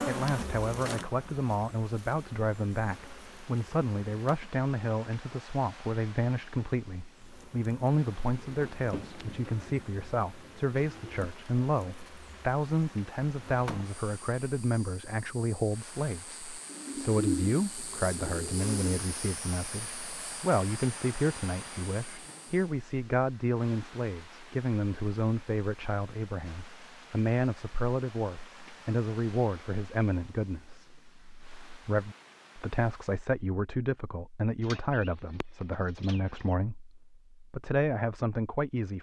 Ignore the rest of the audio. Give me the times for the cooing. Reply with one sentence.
You can hear the cooing from 8.4 to 11.2 s, from 16.6 to 18.9 s and from 34.6 to 36.5 s.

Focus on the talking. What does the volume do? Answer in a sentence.
The volume of the talking stays about the same.